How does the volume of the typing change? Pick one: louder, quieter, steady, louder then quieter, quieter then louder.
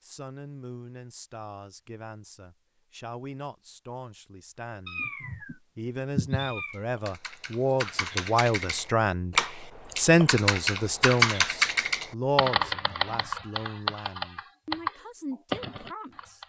louder then quieter.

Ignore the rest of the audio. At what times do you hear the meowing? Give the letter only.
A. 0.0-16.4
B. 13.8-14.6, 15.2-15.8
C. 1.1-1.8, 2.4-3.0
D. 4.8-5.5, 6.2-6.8
D.